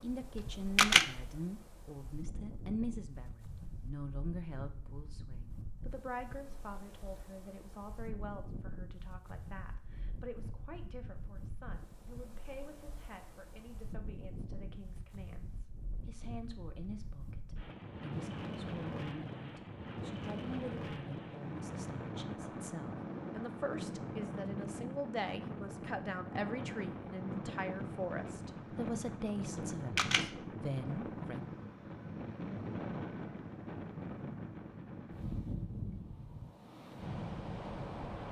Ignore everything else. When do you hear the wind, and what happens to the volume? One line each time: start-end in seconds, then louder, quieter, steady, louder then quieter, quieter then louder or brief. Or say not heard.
0.0-38.2 louder.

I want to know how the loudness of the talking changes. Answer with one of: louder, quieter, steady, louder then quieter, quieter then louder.
quieter then louder.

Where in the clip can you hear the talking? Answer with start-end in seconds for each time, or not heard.
0.0-31.5.